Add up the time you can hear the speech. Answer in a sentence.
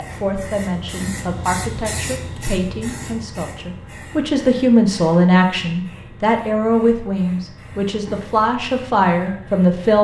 You can hear the speech for 10 seconds altogether.